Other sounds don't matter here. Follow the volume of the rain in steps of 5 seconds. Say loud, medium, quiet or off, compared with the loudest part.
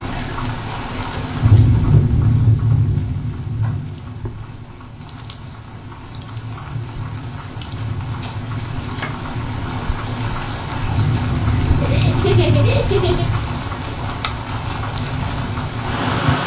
loud, medium, loud, loud.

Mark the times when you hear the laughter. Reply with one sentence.
You can hear the laughter from 11.8 to 13.2 s.